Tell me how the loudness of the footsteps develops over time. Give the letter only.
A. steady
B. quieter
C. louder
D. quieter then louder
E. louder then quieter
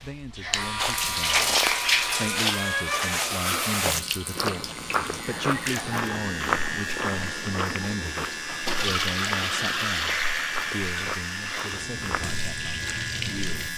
B.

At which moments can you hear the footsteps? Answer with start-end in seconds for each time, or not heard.
0.8-12.4.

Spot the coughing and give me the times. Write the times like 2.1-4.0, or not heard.
not heard.